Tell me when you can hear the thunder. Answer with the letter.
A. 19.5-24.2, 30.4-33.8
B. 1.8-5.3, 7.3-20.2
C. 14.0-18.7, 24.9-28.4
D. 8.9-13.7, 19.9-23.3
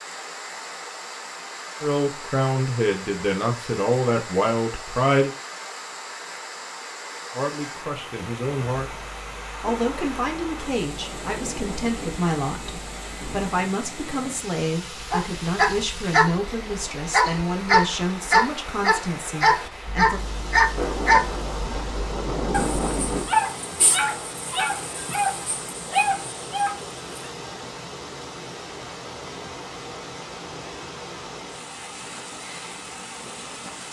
D.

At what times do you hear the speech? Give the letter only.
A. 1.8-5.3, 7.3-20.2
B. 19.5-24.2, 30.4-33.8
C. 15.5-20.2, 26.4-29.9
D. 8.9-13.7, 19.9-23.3
A.